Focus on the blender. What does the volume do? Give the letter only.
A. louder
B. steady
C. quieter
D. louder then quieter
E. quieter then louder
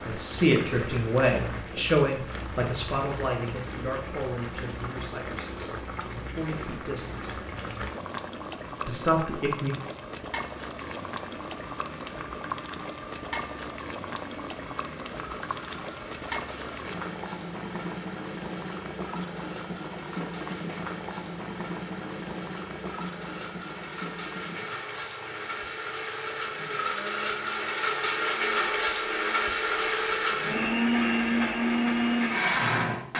A.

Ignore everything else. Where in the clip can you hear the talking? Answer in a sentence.
The talking can be heard from 0.0 to 7.4 s and from 8.8 to 9.8 s.